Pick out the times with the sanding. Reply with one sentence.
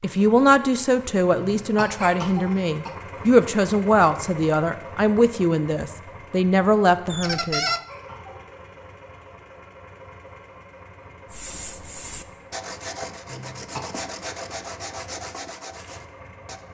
The sanding can be heard from 11.3 to 16.6 s.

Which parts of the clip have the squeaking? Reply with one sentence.
You can hear the squeaking from 7.1 to 7.8 s.